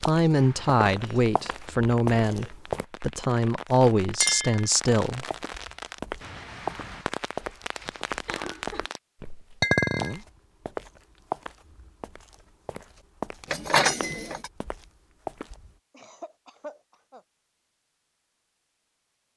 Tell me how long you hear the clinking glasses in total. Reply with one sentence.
The clinking glasses can be heard for 2 seconds in total.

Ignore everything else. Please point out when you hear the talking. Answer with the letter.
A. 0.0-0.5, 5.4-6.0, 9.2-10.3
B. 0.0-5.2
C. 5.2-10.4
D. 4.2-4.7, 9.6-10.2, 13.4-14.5
B.